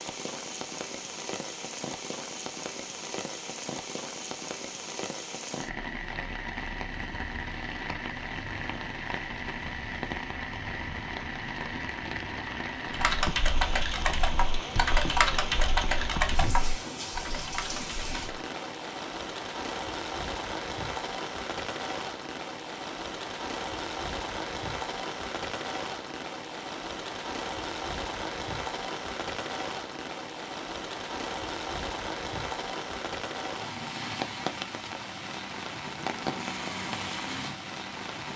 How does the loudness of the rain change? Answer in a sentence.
The loudness of the rain stays about the same.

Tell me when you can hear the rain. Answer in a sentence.
You can hear the rain from 0.0 to 38.3 s.